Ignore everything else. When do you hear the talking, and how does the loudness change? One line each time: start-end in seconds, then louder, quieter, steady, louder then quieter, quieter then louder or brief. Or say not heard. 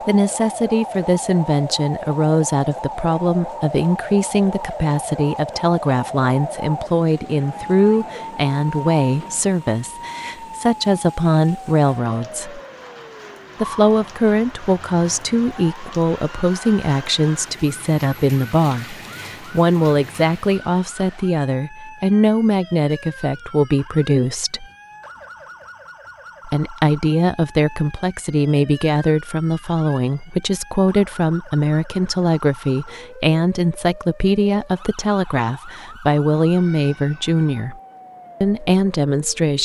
0.1-12.6 steady
13.6-24.6 steady
26.4-37.8 steady
38.4-39.5 brief.